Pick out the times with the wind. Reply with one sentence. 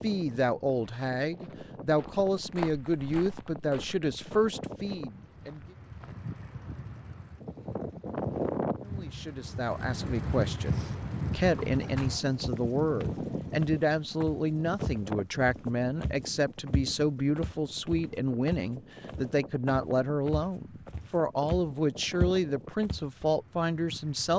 You can hear the wind from 0.0 to 24.3 s.